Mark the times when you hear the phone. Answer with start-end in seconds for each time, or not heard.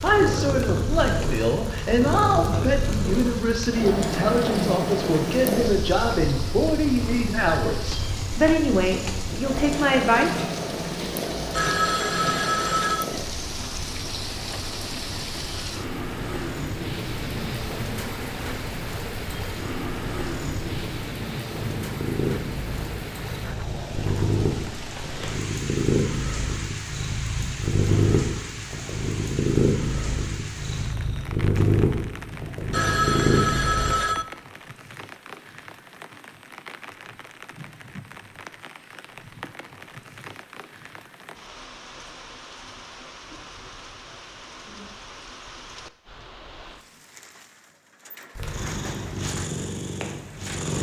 11.5-13.1, 32.7-34.2.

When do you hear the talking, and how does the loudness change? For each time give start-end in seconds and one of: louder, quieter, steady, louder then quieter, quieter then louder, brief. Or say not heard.
0.0-10.4 steady.